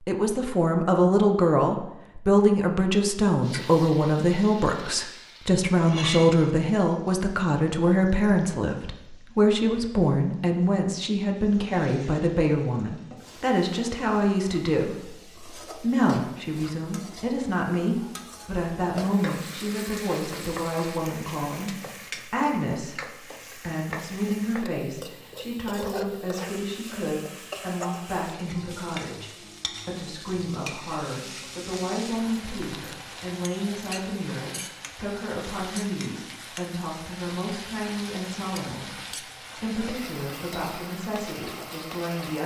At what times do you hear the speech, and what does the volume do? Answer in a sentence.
The speech can be heard from 0.1 to 42.4 s, getting quieter.